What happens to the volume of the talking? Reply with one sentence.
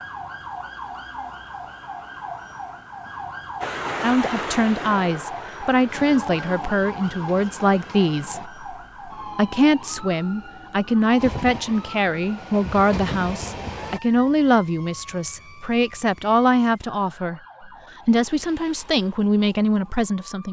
The volume of the talking stays about the same.